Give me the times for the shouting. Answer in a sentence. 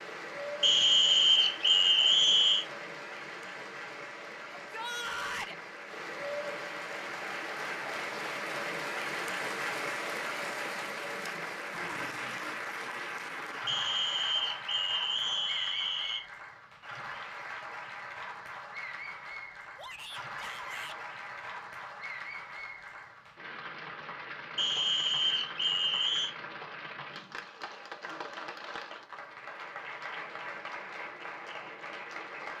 The shouting can be heard from 4.5 to 5.5 s and from 19.8 to 21.0 s.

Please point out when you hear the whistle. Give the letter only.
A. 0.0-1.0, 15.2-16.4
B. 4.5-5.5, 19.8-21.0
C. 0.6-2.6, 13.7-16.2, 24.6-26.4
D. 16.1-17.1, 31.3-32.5
C.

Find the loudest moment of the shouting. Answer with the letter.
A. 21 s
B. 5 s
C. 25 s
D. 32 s
B.